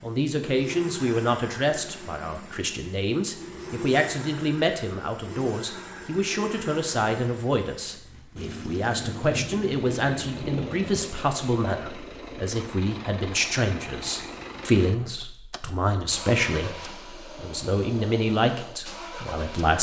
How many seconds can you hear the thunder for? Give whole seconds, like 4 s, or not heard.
2 s.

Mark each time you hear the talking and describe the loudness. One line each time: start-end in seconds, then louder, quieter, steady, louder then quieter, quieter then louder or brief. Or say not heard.
0.0-19.7 steady.